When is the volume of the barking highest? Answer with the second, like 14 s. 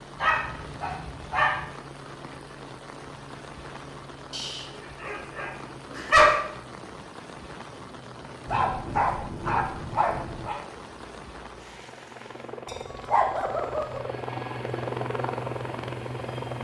6 s.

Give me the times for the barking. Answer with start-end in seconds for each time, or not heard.
0.1-1.6, 4.3-6.4, 8.4-10.6, 12.7-14.0.